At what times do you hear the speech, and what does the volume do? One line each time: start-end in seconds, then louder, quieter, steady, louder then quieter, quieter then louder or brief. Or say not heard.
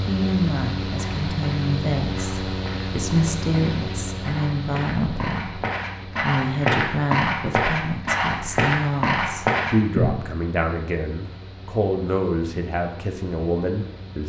0.1-14.2 steady.